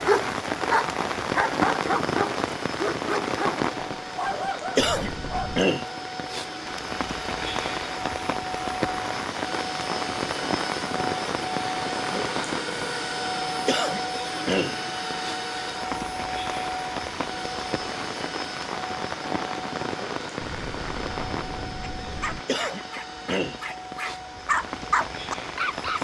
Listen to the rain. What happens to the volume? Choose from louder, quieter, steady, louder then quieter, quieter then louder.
quieter.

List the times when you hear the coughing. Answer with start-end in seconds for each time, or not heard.
not heard.